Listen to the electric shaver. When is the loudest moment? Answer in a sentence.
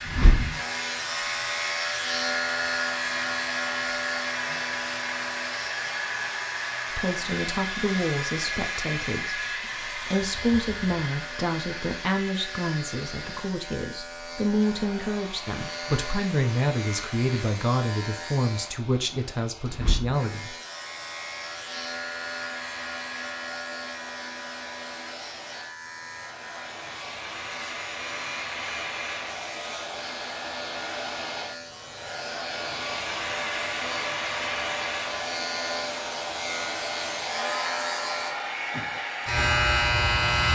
The volume of the electric shaver peaks at 40 seconds.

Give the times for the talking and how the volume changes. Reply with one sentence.
The talking can be heard from 6.9 to 20.6 s, at a steady volume.